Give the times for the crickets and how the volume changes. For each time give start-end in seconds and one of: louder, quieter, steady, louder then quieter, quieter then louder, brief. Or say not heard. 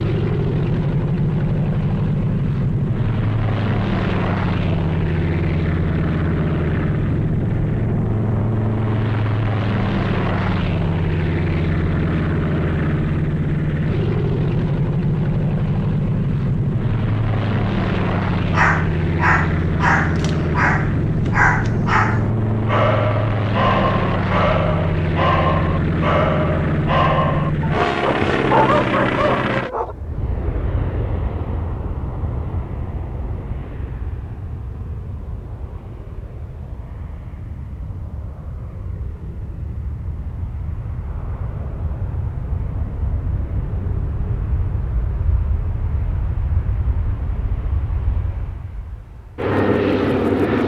not heard.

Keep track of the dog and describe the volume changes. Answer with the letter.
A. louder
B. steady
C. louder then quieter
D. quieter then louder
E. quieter
B.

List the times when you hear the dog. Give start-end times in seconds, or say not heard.
18.5-29.9.